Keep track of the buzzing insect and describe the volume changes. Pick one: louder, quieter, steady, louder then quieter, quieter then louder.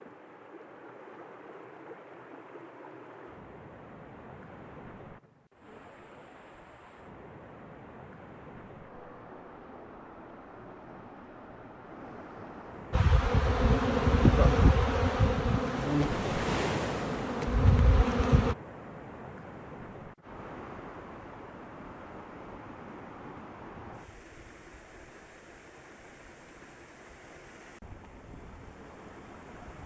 quieter then louder.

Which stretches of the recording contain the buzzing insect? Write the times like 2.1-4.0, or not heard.
12.9-18.6.